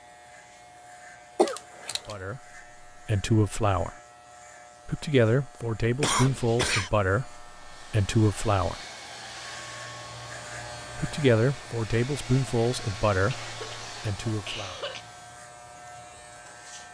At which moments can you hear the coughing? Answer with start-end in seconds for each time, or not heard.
1.4-2.0, 6.0-6.9, 13.4-15.0.